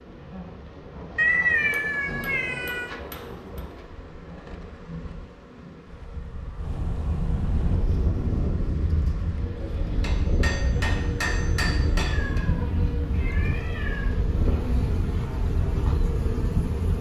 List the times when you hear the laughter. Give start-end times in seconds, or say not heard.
not heard.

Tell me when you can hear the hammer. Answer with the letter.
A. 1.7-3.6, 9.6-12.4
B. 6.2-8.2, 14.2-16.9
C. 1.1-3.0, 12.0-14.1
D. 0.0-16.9
A.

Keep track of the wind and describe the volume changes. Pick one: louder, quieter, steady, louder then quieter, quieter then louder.
louder.